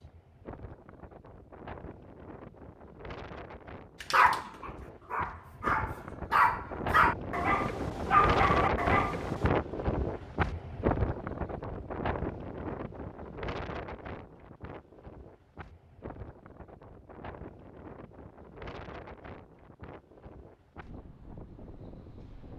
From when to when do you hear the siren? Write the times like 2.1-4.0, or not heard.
not heard.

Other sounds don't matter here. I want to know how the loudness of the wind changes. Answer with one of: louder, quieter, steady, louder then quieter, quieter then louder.
louder then quieter.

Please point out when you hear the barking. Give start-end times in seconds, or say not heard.
4.0-9.5.